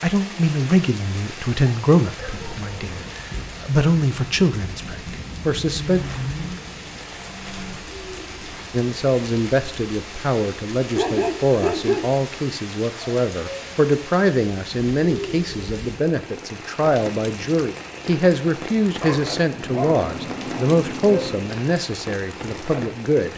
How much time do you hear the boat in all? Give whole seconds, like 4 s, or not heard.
4 s.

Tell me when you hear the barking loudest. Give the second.
12 s.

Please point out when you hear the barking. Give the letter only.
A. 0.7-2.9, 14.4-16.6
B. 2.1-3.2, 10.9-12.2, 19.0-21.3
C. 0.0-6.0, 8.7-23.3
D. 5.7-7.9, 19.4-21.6
B.